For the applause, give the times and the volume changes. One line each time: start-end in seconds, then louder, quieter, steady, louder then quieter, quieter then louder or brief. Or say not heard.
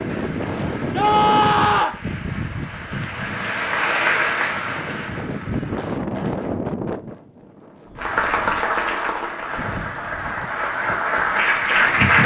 0.0-6.5 louder then quieter
8.0-12.2 quieter then louder.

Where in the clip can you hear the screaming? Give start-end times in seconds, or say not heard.
0.9-2.0.